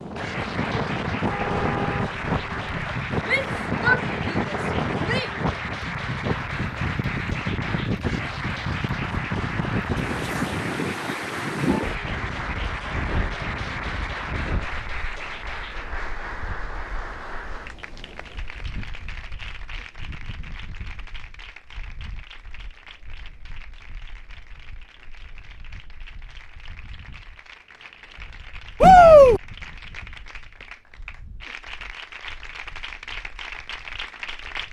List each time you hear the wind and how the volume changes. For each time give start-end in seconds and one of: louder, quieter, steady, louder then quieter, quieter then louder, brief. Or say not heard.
0.0-34.6 quieter.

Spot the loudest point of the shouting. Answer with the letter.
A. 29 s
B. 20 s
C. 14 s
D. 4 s
A.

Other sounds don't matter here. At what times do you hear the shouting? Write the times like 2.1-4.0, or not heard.
3.2-5.3, 28.8-29.4.